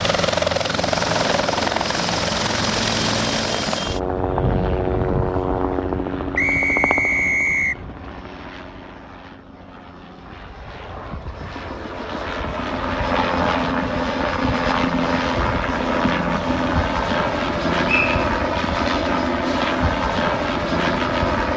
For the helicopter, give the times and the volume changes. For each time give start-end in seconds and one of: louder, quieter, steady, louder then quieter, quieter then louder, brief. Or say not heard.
0.0-21.5 quieter then louder.